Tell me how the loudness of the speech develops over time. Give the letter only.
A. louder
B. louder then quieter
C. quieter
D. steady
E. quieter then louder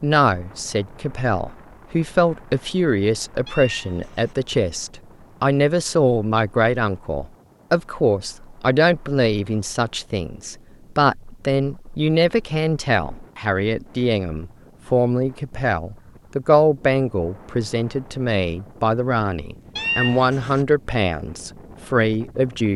D.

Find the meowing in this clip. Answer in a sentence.
You can hear the meowing from 3.5 to 4.3 s and from 19.8 to 20.6 s.